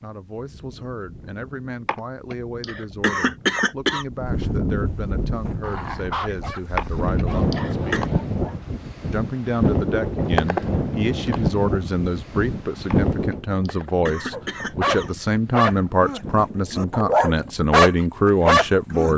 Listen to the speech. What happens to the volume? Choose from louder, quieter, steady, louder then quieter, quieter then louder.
louder.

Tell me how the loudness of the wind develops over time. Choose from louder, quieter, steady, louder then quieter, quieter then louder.
louder then quieter.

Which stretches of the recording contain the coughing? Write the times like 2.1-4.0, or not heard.
1.9-4.0, 6.8-8.1, 12.9-15.3.